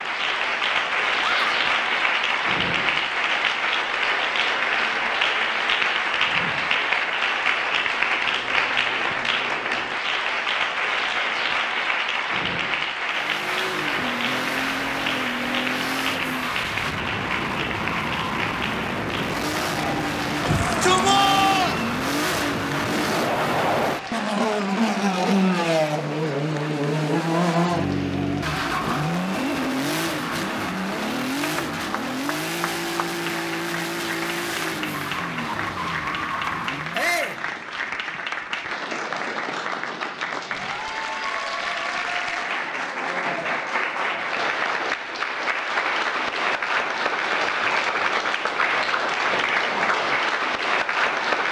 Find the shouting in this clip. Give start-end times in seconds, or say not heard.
1.2-1.6, 20.4-21.8, 36.9-37.4.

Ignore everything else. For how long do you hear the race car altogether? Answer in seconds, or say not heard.
24 s.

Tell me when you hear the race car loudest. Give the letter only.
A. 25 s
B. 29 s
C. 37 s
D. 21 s
A.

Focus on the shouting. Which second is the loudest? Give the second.
21 s.